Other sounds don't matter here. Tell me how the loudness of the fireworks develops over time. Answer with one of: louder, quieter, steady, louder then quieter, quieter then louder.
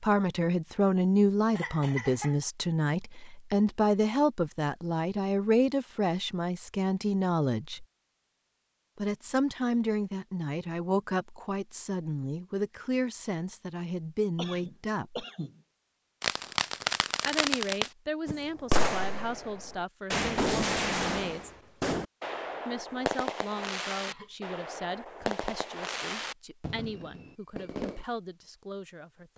quieter.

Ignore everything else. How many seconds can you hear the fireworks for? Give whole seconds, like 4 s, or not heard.
12 s.